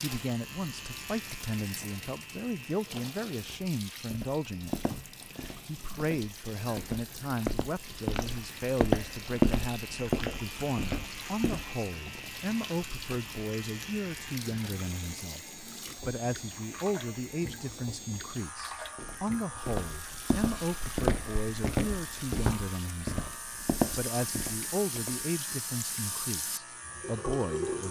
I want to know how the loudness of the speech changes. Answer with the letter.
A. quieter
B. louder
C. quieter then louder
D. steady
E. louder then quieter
D.